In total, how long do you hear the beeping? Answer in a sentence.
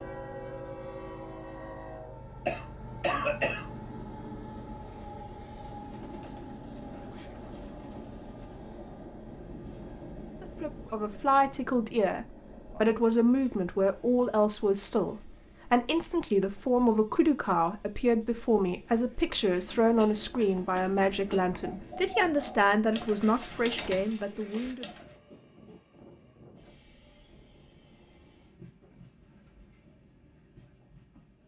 The beeping can be heard for 2 seconds in total.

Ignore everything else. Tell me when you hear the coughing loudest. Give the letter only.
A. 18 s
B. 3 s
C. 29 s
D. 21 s
B.